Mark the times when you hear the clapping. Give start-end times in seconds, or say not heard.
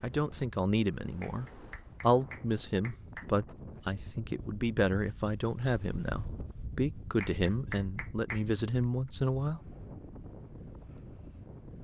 1.2-3.3, 7.2-8.4.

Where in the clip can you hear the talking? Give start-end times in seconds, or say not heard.
0.0-9.6.